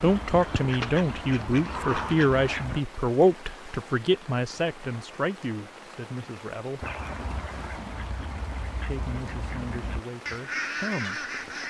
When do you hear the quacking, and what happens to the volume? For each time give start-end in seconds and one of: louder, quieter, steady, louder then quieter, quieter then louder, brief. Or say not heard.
0.0-2.8 brief
6.8-11.6 louder.